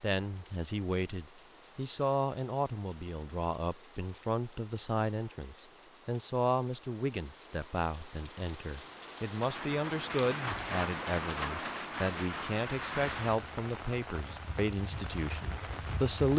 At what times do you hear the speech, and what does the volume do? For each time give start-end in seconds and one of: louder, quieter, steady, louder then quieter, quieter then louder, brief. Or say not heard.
0.0-16.3 steady.